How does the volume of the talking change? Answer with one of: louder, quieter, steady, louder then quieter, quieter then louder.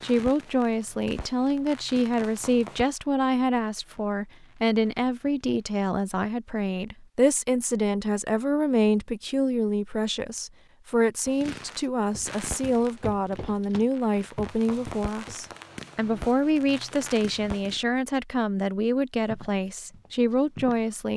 steady.